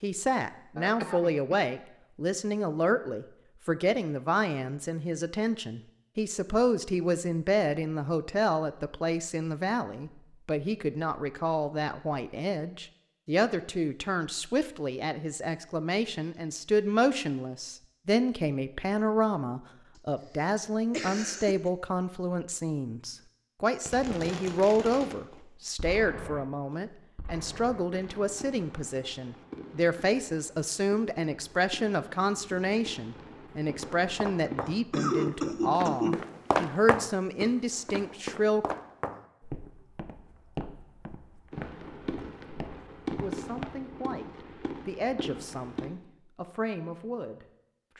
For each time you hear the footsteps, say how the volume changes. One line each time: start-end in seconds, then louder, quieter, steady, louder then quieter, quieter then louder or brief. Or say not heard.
33.6-43.9 louder then quieter.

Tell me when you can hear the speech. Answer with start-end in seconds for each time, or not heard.
0.0-38.7, 43.2-47.9.